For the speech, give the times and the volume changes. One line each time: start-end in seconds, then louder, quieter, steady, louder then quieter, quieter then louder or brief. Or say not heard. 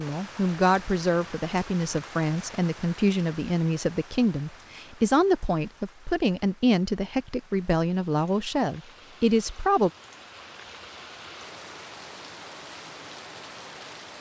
0.0-9.9 steady.